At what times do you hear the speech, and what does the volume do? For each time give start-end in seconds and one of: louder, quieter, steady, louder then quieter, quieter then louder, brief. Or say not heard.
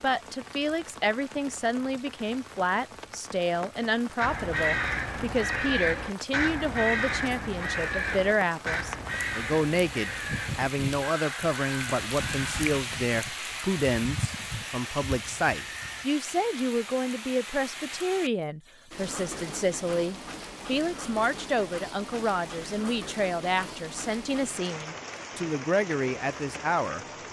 0.0-27.0 steady.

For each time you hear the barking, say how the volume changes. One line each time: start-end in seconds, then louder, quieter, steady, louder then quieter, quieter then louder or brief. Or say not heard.
not heard.